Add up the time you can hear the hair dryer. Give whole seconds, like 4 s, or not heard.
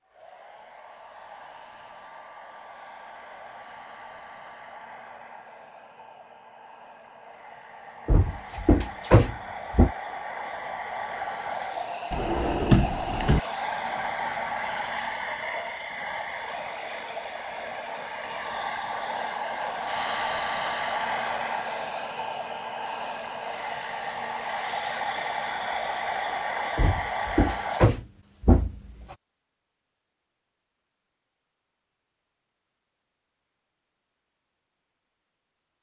28 s.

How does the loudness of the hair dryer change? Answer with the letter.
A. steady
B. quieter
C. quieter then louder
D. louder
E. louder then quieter
D.